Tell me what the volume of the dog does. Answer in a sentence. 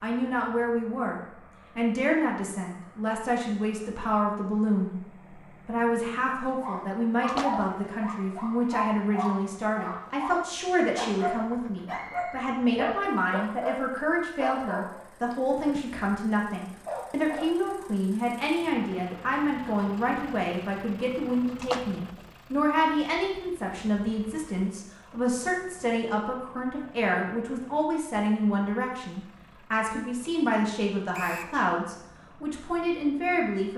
The volume of the dog goes down.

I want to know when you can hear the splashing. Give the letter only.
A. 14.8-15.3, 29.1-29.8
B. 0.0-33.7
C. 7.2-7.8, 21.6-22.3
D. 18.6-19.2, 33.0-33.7
C.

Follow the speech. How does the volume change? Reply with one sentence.
The volume of the speech stays about the same.